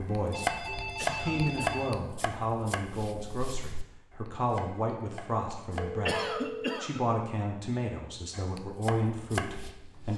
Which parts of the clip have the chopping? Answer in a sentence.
The chopping can be heard from 0.0 to 5.9 s and from 8.3 to 10.1 s.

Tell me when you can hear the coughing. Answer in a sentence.
You can hear the coughing from 0.9 to 1.6 s and from 6.0 to 7.0 s.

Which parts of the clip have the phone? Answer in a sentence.
You can hear the phone from 0.3 to 1.9 s and from 6.0 to 6.8 s.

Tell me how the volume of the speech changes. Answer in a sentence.
The loudness of the speech stays about the same.